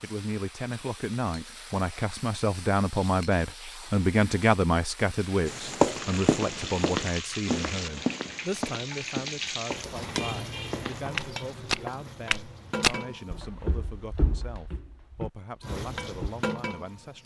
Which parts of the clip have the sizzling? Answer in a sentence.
The sizzling can be heard from 0.0 to 13.4 s and from 15.6 to 17.2 s.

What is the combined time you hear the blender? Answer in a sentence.
You can't hear the blender here.